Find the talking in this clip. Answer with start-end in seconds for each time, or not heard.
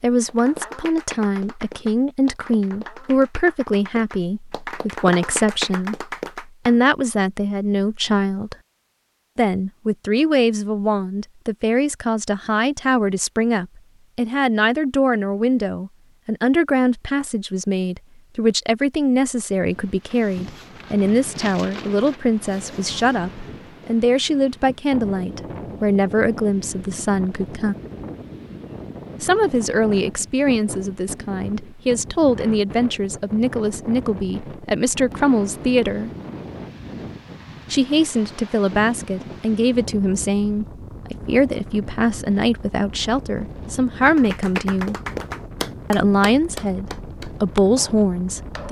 0.0-8.6, 9.3-27.8, 29.2-36.1, 37.7-45.0, 45.9-48.6.